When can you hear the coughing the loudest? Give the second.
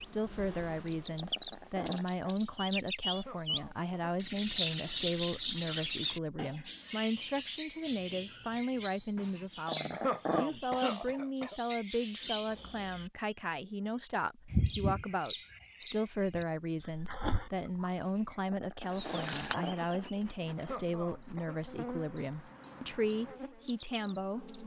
10 s.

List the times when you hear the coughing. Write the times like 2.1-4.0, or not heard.
3.1-4.2, 9.9-11.6, 20.6-21.6.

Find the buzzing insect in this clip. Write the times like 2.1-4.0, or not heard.
0.0-1.7, 18.9-24.6.